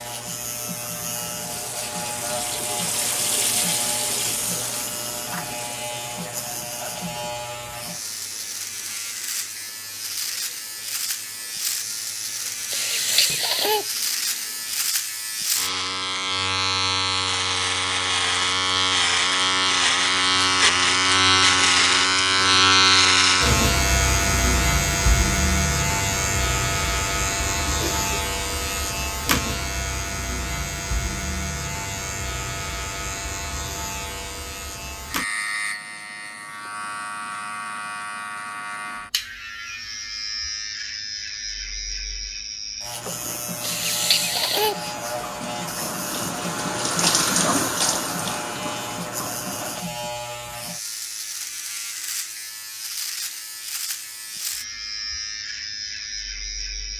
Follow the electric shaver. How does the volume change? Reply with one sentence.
The loudness of the electric shaver goes up, then down.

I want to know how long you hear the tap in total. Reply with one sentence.
The tap can be heard for 22 seconds in total.